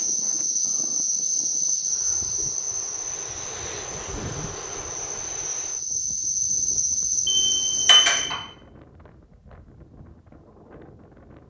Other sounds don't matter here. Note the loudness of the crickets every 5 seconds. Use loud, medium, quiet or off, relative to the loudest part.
loud, loud, off.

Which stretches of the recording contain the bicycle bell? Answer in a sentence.
The bicycle bell can be heard from 7.2 to 8.4 s.